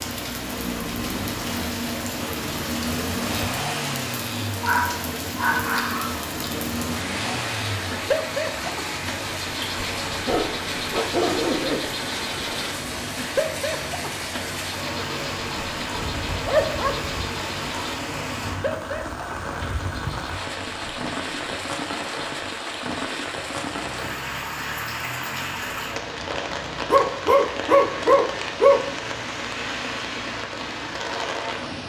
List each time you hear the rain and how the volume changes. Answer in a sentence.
The rain can be heard from 0.0 to 31.8 s, at a steady volume.